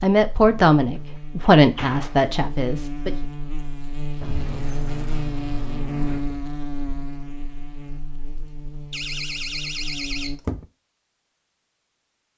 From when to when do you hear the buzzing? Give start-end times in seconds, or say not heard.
0.0-10.4.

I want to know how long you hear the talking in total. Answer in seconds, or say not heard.
3 s.